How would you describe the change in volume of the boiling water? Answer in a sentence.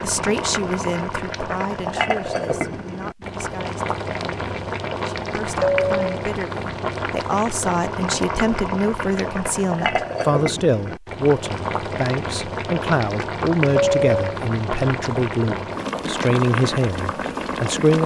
The volume of the boiling water stays about the same.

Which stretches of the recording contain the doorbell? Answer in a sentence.
You can hear the doorbell from 5.6 to 6.2 s and from 13.8 to 14.4 s.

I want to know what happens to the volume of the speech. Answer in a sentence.
The volume of the speech goes up.